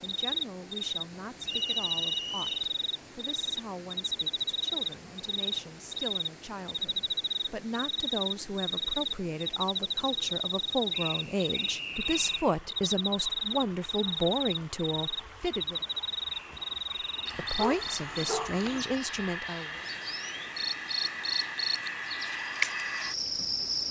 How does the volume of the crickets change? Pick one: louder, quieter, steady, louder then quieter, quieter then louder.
steady.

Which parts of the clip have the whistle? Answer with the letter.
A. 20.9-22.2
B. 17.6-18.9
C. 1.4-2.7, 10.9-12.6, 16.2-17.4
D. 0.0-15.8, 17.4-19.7
C.